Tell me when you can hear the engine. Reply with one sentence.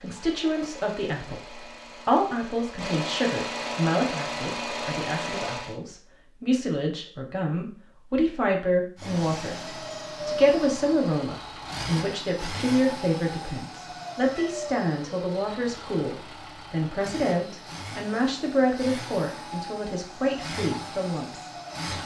You can hear the engine from 0.0 to 5.8 s and from 8.9 to 22.0 s.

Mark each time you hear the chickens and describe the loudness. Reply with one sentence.
The chickens can't be heard in this clip.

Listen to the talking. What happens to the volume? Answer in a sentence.
The loudness of the talking stays about the same.